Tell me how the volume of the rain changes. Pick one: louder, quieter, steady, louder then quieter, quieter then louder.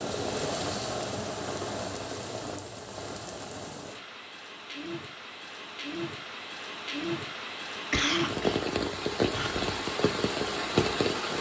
quieter then louder.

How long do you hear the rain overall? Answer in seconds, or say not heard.
11 s.